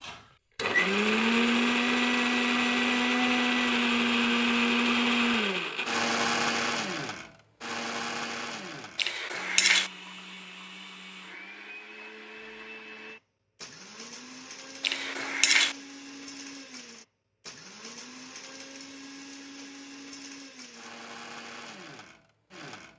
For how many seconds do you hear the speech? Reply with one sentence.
You can't hear the speech here.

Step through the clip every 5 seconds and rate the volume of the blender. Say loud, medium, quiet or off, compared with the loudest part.
loud, medium, quiet, quiet, quiet.